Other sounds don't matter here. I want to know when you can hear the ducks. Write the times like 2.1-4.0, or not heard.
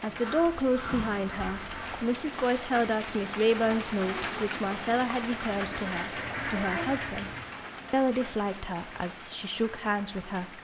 0.1-2.0, 5.4-7.5.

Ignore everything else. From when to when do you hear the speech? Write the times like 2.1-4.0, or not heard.
0.0-7.3, 7.9-10.5.